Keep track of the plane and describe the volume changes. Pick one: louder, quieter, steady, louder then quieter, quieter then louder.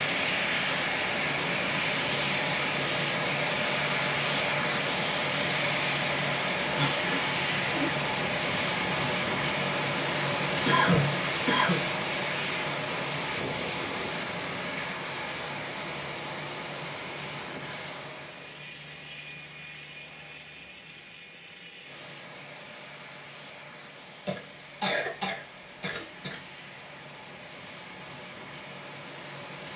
quieter.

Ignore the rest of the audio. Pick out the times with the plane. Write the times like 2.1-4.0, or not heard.
0.0-29.7.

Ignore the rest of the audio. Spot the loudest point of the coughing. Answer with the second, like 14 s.
11 s.